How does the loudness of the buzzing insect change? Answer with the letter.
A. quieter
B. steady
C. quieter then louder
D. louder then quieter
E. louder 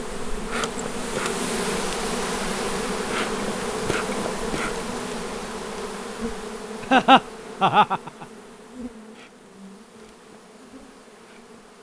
A.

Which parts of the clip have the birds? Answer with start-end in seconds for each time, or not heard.
not heard.